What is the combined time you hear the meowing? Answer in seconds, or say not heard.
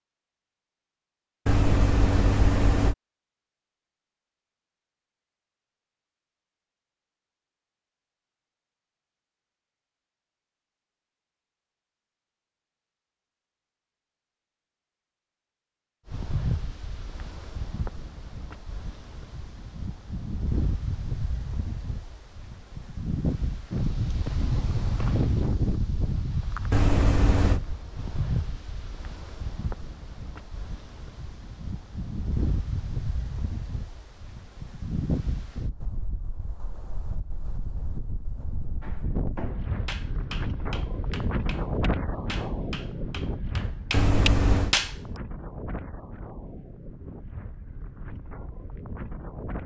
3 s.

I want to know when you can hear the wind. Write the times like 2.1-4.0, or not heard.
16.1-49.6.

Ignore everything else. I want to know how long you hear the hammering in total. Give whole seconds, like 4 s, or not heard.
6 s.